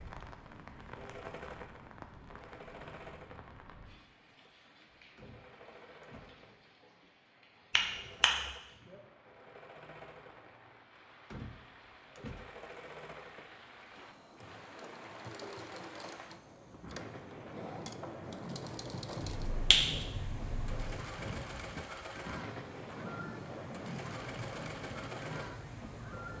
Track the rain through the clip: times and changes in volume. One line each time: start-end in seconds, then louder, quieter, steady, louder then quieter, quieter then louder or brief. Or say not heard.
0.0-26.3 quieter then louder.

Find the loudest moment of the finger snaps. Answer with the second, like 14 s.
20 s.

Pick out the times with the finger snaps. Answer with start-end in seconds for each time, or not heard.
7.7-8.3, 19.2-20.9.